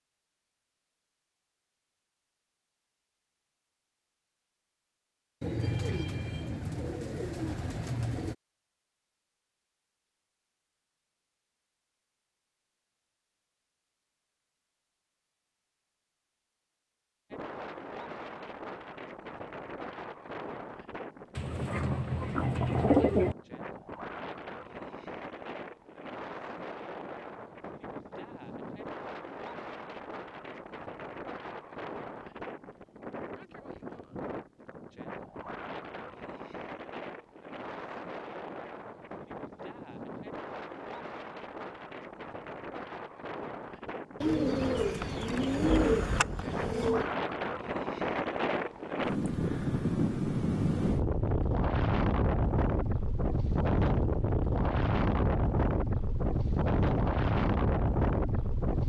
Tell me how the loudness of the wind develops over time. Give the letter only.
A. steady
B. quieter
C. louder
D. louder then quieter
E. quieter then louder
C.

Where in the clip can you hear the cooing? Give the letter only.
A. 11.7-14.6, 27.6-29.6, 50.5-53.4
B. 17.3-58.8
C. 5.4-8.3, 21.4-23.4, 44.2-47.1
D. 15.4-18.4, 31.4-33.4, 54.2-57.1
C.